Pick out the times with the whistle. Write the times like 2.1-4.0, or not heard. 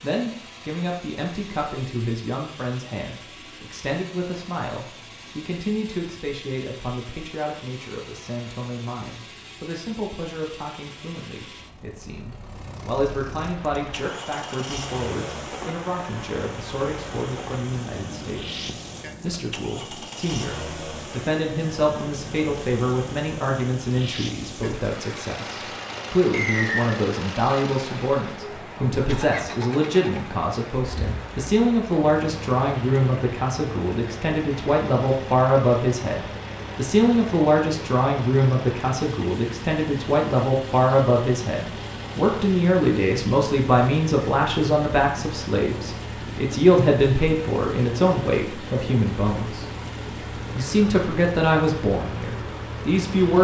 26.3-26.9.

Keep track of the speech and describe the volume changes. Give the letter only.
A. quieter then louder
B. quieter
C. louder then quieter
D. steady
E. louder
E.